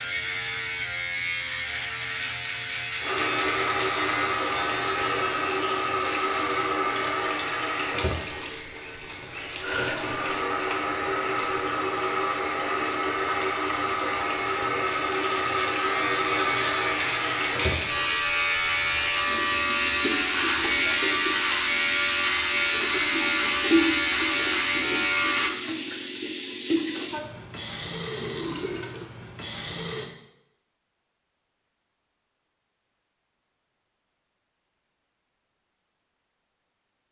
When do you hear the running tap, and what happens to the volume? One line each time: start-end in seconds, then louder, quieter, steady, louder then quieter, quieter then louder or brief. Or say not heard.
3.0-30.1 steady.